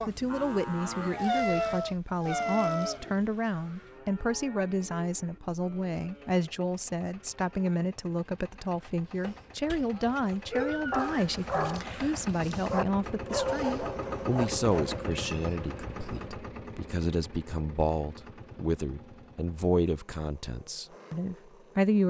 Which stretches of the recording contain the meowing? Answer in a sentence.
The meowing can be heard from 1.1 to 3.0 s, from 10.6 to 12.3 s and from 15.1 to 16.4 s.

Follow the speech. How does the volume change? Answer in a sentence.
The volume of the speech stays about the same.